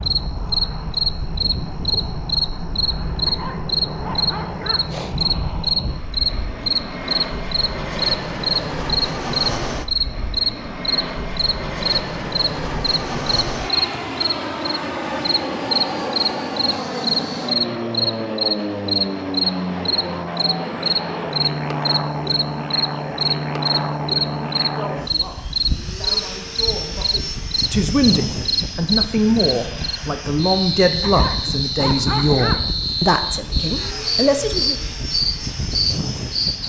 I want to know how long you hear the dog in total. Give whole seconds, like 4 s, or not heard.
3 s.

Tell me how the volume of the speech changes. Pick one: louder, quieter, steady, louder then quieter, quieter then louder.
louder.